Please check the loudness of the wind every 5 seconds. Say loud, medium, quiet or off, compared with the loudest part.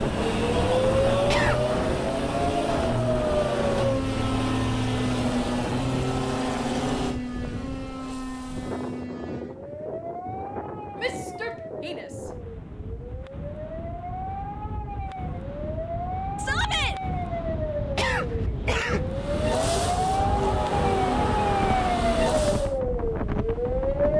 loud, medium, medium, loud, loud.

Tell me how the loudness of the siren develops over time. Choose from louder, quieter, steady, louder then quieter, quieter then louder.
quieter then louder.